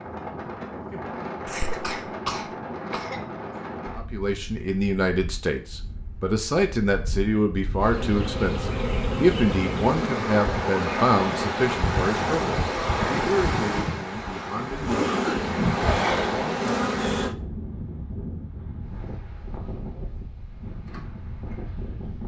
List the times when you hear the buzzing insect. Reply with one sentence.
You can hear the buzzing insect from 7.8 to 12.6 s and from 14.8 to 17.4 s.